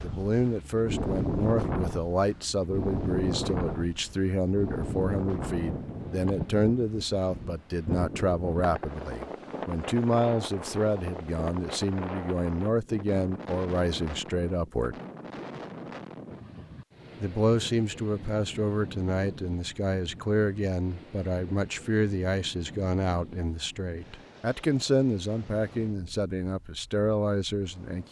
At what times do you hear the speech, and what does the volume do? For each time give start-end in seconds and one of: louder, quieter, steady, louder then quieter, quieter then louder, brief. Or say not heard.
0.0-14.9 steady
17.2-28.0 steady.